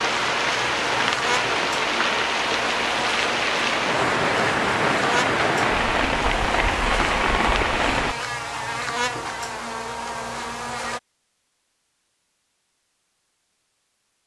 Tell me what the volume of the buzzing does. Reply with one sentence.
The loudness of the buzzing stays about the same.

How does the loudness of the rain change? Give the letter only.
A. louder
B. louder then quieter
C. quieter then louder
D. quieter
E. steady
E.